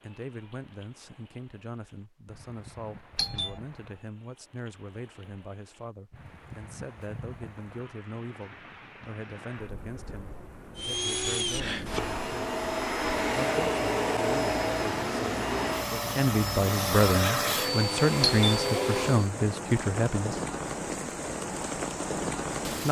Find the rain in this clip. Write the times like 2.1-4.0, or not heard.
0.0-22.8.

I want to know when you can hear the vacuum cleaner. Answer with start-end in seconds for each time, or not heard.
10.8-19.3.